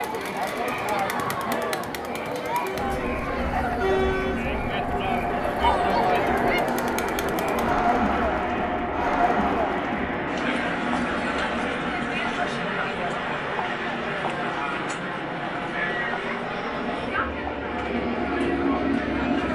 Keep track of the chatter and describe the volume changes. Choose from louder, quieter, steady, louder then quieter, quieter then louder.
quieter.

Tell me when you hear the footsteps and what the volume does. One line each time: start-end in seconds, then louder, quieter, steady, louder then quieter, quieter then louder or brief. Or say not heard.
not heard.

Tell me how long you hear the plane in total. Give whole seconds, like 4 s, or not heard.
17 s.